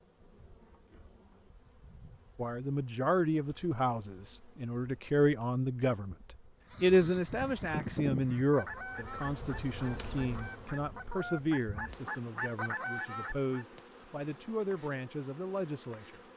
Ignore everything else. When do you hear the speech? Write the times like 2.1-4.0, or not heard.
2.4-16.2.